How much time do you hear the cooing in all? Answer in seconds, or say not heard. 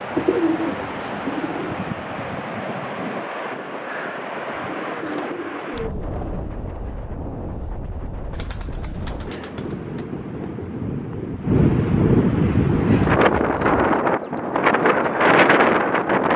7 s.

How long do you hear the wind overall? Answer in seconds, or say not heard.
16 s.